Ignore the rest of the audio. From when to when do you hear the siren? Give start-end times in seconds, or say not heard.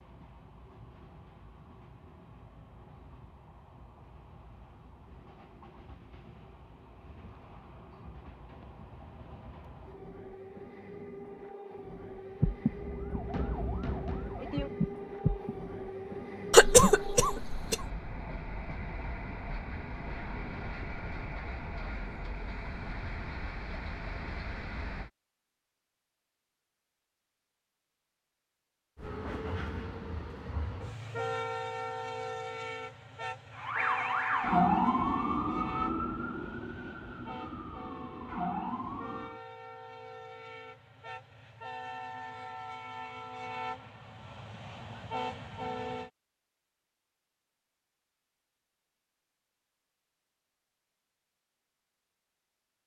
12.4-15.6, 33.5-39.4.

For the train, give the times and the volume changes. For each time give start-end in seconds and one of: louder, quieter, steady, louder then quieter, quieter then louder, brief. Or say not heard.
0.0-25.1 louder
28.9-46.1 quieter then louder.